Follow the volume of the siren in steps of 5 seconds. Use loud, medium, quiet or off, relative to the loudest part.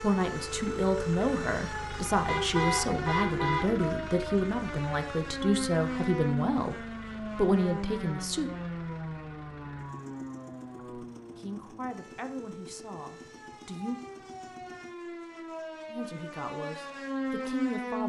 loud, loud, medium, loud.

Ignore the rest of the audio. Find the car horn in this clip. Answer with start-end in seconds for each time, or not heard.
2.2-3.7.